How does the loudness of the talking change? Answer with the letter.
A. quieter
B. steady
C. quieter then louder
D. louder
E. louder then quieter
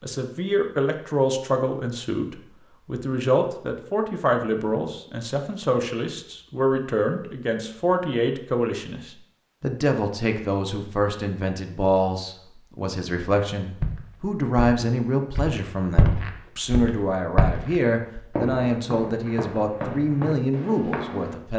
B.